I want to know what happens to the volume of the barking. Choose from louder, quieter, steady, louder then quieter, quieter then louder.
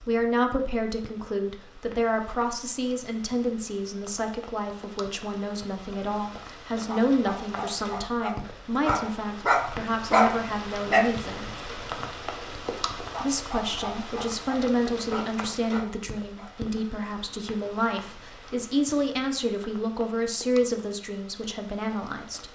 louder then quieter.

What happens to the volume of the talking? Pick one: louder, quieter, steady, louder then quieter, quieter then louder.
steady.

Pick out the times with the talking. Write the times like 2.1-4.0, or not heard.
0.1-11.5, 13.2-22.4.